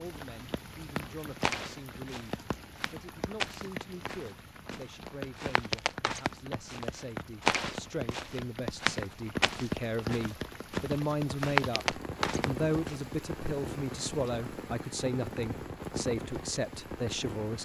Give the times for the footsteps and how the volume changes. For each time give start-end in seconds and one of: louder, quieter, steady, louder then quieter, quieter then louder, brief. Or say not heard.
1.4-12.9 louder.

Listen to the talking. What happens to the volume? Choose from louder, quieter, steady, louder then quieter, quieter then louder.
louder.